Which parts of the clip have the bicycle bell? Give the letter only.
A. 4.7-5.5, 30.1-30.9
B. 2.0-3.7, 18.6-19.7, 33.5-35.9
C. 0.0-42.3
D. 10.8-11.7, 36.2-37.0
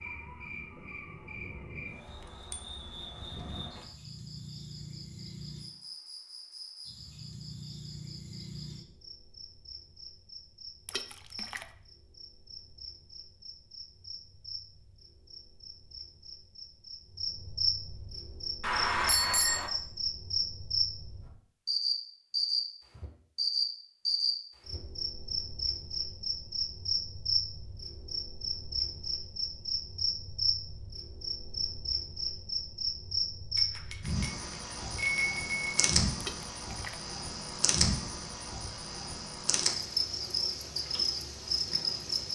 B.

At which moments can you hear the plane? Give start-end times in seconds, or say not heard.
not heard.